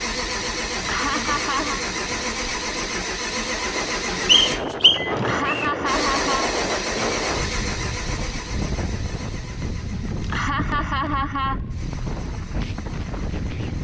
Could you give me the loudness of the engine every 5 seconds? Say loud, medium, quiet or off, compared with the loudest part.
loud, loud, quiet.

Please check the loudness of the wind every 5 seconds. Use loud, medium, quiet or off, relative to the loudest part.
medium, loud, loud.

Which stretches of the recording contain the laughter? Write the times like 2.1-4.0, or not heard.
0.8-1.9, 5.1-6.5, 10.2-11.6.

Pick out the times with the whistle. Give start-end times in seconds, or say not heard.
4.2-5.7.